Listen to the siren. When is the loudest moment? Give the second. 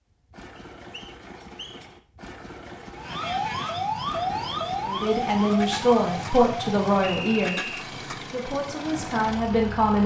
4 s.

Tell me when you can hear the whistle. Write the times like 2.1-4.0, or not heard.
0.6-1.9, 7.0-7.8.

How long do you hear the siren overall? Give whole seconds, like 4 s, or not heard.
4 s.